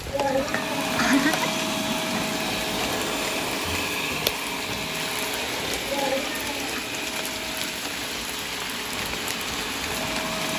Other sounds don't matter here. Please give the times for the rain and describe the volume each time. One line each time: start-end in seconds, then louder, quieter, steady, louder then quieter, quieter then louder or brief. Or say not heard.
0.0-10.5 steady.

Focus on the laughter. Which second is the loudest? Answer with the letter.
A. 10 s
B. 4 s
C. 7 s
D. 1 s
D.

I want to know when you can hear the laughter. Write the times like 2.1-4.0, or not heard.
0.1-2.2, 5.8-6.8.